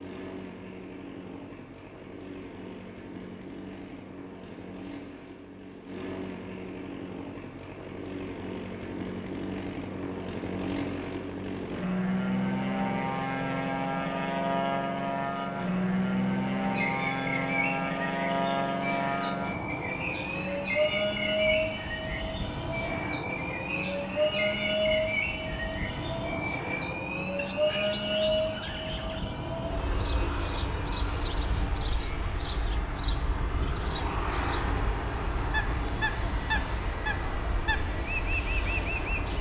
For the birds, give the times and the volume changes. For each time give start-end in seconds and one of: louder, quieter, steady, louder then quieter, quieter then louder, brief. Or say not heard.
16.4-39.3 steady.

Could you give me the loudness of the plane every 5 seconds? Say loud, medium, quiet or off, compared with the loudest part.
quiet, medium, loud, loud, loud, loud, medium, medium.